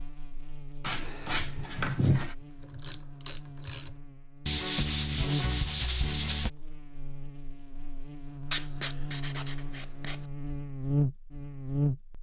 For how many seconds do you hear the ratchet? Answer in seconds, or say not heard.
2 s.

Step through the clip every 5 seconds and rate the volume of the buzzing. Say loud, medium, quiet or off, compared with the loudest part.
quiet, medium, loud.